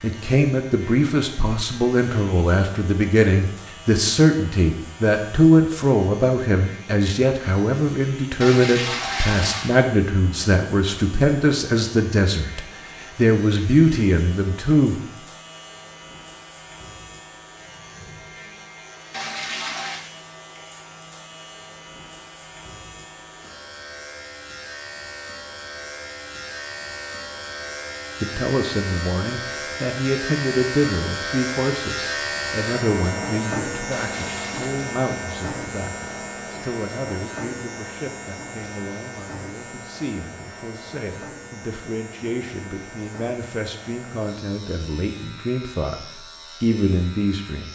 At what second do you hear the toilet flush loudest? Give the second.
9 s.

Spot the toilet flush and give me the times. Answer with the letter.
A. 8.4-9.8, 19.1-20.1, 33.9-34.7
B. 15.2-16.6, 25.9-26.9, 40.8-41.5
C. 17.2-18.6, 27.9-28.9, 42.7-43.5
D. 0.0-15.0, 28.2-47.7
A.